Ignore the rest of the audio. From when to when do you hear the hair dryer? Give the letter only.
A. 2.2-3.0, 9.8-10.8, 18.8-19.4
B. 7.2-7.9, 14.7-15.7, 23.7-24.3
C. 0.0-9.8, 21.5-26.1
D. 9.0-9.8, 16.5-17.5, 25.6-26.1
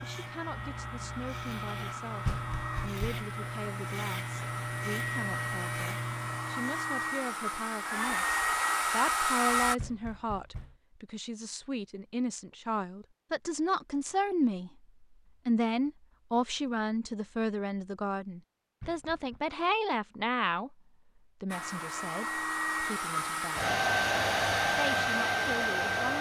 C.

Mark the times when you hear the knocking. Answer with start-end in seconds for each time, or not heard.
2.2-3.0, 9.8-10.8, 18.8-19.4.